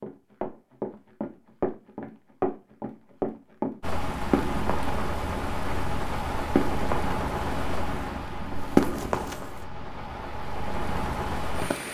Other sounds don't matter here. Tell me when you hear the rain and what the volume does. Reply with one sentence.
The rain can be heard from 3.8 to 11.8 s, getting quieter then louder.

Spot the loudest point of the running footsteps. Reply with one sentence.
The volume of the running footsteps peaks at 9 seconds.